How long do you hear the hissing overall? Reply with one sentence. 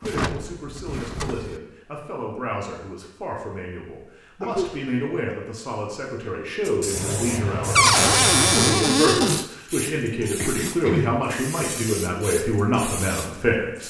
You can hear the hissing for 7 seconds altogether.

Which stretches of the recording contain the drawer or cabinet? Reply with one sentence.
You can hear the drawer or cabinet from 0.0 to 1.6 s and from 7.8 to 9.4 s.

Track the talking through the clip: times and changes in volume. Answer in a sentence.
The talking can be heard from 0.0 to 13.8 s, getting louder.